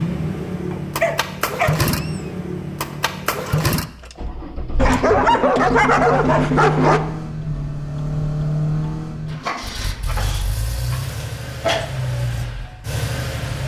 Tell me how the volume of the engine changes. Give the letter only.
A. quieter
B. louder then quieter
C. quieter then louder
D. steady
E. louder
D.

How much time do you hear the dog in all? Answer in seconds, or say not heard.
6 s.